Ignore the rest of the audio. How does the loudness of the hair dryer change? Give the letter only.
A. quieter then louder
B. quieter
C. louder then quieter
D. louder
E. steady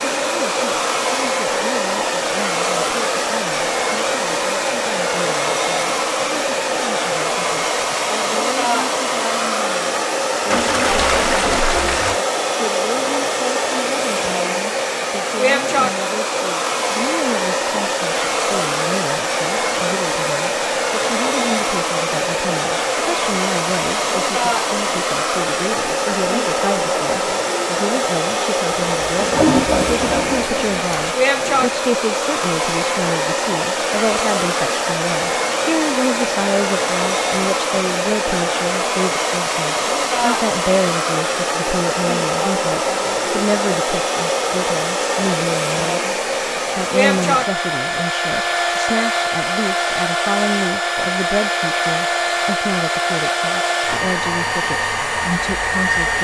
E.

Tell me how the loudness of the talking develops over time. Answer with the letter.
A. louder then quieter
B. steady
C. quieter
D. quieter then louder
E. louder
E.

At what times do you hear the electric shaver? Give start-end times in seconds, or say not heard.
not heard.